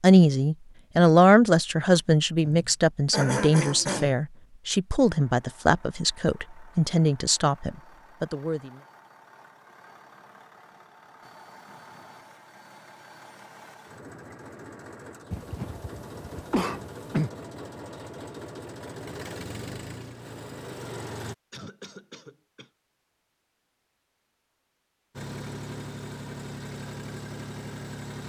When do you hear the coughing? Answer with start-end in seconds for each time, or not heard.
2.5-4.2, 15.3-17.3, 21.5-22.7.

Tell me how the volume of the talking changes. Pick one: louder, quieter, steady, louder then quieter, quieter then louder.
quieter.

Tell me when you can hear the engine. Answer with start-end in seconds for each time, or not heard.
5.0-21.4, 25.1-28.2.